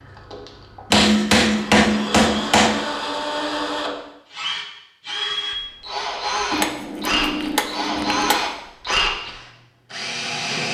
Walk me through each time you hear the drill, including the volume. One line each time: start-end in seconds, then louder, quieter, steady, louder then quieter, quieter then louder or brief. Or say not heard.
0.0-10.6 louder.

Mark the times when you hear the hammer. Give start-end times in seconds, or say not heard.
0.9-2.8, 6.5-8.4.